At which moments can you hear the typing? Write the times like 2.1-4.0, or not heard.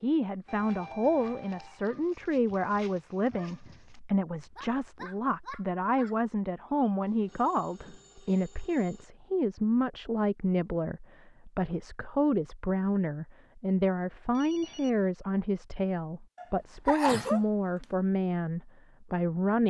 not heard.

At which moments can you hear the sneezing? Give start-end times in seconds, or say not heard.
16.4-17.9.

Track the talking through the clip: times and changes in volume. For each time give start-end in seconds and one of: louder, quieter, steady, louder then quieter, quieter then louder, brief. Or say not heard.
0.0-19.6 steady.